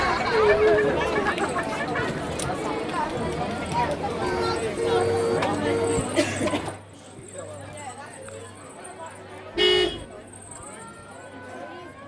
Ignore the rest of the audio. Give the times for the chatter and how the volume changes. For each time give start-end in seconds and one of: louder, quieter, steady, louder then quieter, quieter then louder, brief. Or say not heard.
0.0-12.0 quieter.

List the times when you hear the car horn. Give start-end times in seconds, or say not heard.
0.6-2.0, 4.2-6.0, 9.6-10.1.